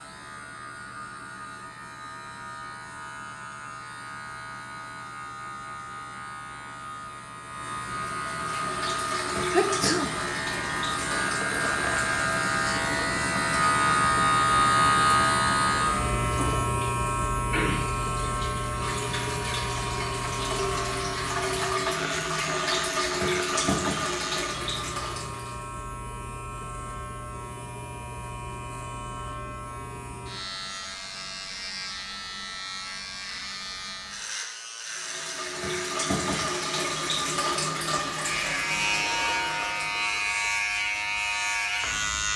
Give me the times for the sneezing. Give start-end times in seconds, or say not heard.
9.5-10.1.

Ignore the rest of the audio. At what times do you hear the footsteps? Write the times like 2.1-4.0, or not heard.
not heard.